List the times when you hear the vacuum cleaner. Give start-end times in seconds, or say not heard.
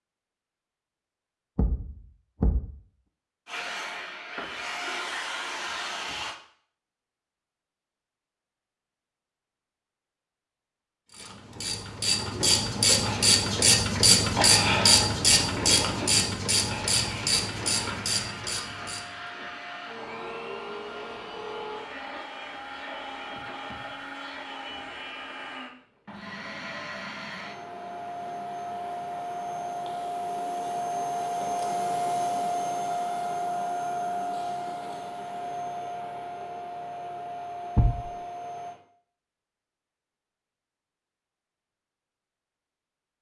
3.5-6.3, 16.9-38.8.